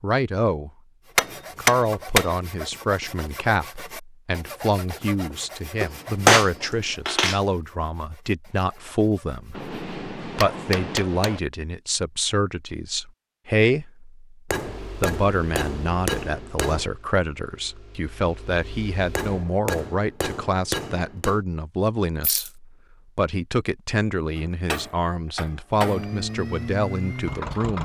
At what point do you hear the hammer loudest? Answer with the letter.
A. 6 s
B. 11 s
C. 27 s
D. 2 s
A.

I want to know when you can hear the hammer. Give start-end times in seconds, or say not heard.
1.1-2.4, 5.8-7.4, 9.6-11.4, 14.5-16.9, 19.1-21.4, 24.4-26.2.